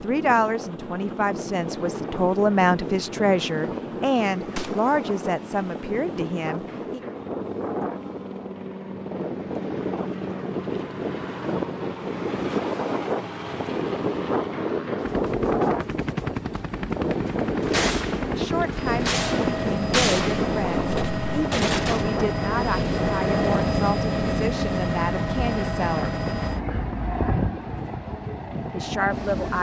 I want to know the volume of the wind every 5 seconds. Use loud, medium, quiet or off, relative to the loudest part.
medium, medium, loud, loud, loud, medium.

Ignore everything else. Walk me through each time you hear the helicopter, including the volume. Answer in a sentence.
You can hear the helicopter from 0.0 to 29.5 s, getting louder.